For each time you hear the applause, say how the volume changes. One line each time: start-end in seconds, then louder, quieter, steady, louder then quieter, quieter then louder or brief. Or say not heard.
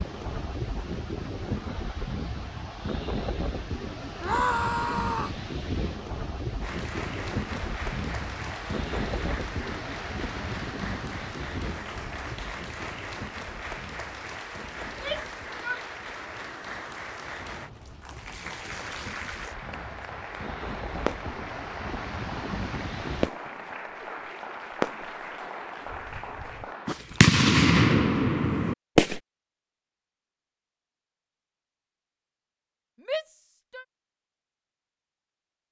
6.6-27.1 steady.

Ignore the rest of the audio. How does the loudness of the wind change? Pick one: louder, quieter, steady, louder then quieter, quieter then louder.
quieter then louder.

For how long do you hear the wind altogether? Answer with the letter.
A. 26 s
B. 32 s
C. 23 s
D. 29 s
C.